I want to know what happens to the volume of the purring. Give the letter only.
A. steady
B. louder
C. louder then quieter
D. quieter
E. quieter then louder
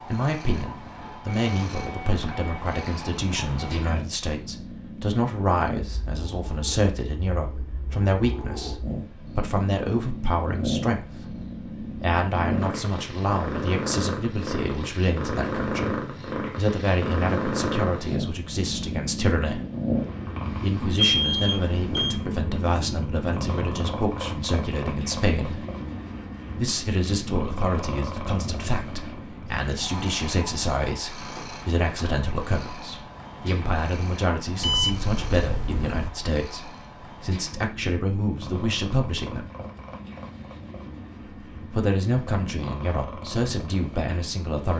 C.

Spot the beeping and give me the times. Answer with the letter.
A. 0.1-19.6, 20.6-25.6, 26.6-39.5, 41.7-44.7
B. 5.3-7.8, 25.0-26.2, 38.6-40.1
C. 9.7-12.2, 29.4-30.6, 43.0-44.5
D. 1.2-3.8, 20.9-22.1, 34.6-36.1
D.